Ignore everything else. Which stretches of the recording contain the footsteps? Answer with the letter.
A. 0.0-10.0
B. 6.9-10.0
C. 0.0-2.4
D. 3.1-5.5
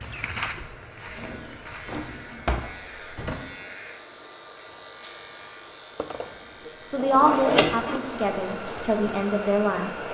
C.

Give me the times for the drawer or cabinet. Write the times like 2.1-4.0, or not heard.
1.1-3.4, 6.0-8.0.